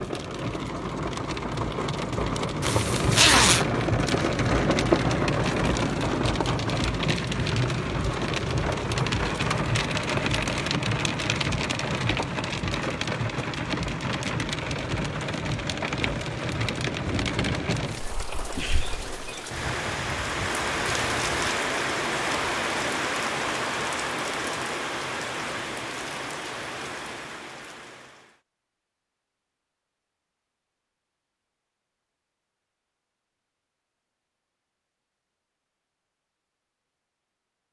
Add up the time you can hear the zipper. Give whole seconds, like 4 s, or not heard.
2 s.